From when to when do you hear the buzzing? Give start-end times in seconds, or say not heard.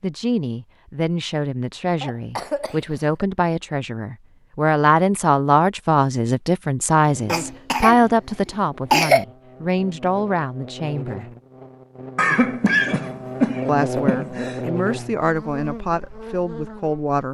7.0-17.1.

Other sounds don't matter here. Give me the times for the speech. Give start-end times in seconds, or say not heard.
0.0-11.3, 13.7-17.2.